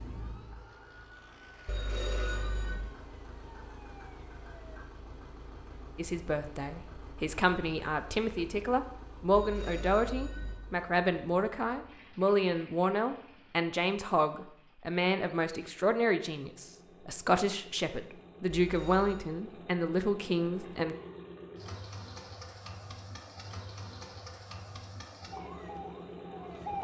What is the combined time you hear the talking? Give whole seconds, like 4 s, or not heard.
15 s.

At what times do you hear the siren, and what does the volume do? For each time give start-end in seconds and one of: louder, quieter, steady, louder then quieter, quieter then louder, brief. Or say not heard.
0.0-4.8 louder then quieter
25.3-26.7 brief.